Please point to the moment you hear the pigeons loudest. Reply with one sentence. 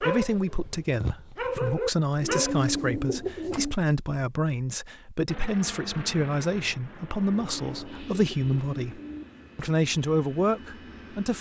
The loudest moment of the pigeons is at 3 seconds.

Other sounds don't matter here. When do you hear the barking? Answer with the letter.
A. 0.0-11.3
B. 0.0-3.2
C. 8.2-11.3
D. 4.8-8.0
B.